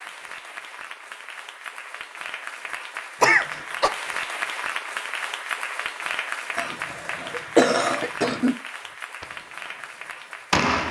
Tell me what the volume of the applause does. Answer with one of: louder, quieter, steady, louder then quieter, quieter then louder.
louder then quieter.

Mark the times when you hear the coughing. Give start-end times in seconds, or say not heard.
3.2-3.9, 6.5-8.6.